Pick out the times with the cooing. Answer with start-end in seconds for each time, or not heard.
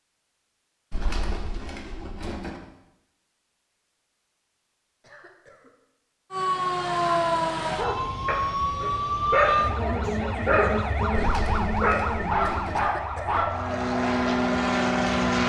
0.9-2.6, 11.2-12.8.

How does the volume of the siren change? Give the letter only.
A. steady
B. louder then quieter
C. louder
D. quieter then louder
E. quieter
E.